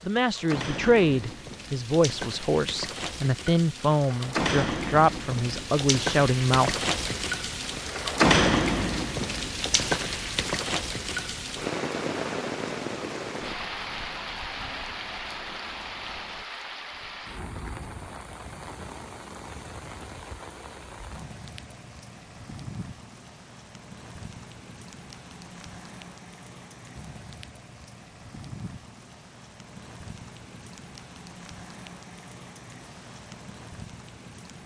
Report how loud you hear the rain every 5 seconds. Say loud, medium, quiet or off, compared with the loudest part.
medium, loud, medium, quiet, quiet, quiet, quiet.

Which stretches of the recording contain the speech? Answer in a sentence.
The speech can be heard from 0.1 to 6.8 s.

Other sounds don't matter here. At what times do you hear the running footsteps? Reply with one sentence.
The running footsteps can't be heard in this clip.